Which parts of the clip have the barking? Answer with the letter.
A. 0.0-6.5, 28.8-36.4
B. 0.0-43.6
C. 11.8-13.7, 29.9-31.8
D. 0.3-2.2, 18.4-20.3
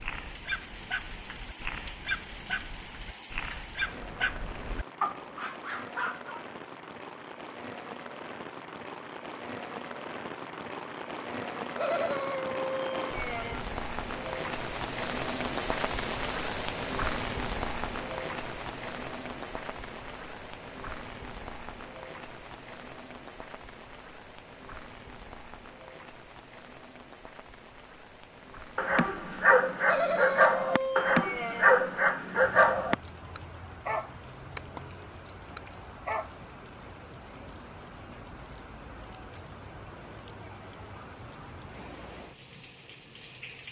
A.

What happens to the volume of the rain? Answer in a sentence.
The loudness of the rain goes up, then down.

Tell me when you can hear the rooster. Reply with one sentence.
You can hear the rooster from 11.8 to 13.7 s and from 29.9 to 31.8 s.